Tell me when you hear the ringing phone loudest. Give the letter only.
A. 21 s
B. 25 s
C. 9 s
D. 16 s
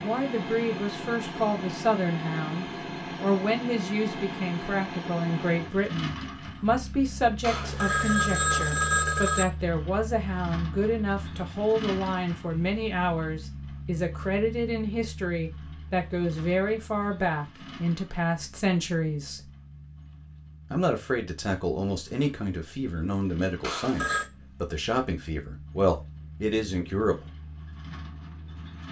C.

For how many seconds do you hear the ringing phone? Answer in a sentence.
The ringing phone can be heard for 3 seconds in total.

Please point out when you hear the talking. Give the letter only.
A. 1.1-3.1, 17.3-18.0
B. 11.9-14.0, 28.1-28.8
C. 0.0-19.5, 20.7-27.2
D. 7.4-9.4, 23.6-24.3
C.